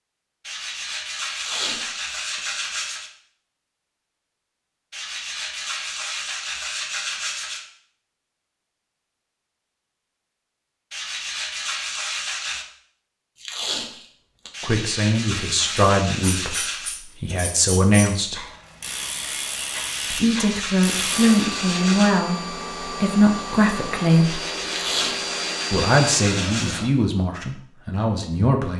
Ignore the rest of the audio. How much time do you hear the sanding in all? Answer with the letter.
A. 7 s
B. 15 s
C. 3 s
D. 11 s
B.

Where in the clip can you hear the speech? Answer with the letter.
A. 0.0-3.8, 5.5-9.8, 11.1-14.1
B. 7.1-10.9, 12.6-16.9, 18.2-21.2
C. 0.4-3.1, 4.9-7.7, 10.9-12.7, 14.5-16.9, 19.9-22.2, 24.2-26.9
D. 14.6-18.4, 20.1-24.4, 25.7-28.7
D.